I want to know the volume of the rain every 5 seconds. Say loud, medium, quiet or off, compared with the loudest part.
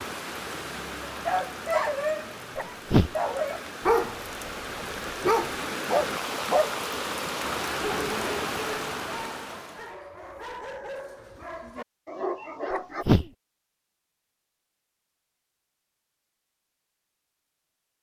medium, loud, off, off.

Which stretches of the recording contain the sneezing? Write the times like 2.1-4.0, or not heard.
2.5-3.1, 12.7-13.2.